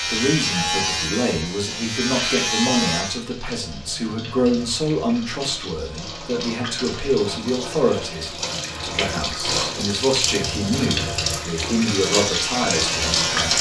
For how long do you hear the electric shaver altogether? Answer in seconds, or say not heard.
5 s.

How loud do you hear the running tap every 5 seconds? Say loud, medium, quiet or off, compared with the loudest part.
quiet, medium, loud.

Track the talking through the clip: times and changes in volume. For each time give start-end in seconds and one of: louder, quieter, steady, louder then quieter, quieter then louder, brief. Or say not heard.
0.0-13.5 steady.